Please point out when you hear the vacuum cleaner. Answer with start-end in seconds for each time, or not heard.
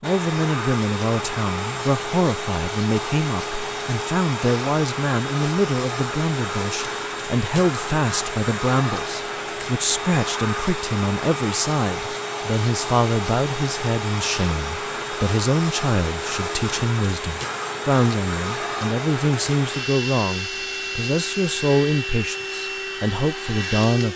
0.0-24.1.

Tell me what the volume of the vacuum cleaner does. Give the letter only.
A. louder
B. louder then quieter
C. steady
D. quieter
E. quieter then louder
C.